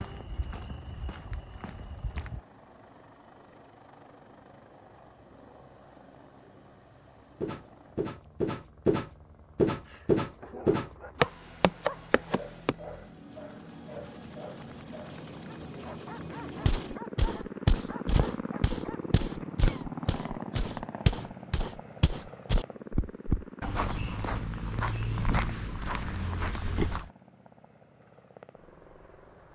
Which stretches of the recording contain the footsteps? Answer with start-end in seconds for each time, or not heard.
0.0-2.4, 7.4-12.8, 16.6-27.1.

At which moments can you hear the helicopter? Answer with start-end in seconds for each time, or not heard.
0.0-29.5.